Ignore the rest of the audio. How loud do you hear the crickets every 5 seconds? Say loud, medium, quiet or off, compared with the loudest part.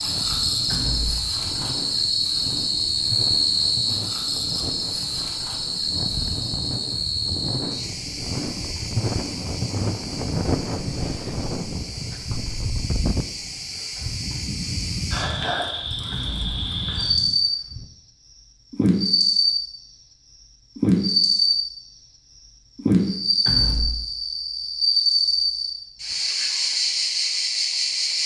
loud, medium, quiet, loud, loud, loud.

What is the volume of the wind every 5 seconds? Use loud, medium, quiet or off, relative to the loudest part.
medium, loud, loud, medium, off, off.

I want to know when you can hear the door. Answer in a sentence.
You can hear the door from 0.7 to 1.2 s, from 16.1 to 16.6 s and from 23.4 to 24.1 s.